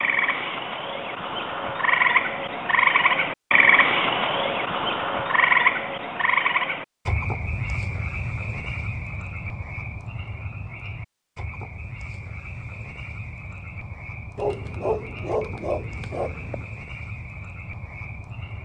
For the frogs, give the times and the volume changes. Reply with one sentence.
The frogs can be heard from 0.0 to 18.5 s, getting quieter.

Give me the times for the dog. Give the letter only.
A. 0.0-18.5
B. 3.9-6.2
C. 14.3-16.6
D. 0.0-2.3
C.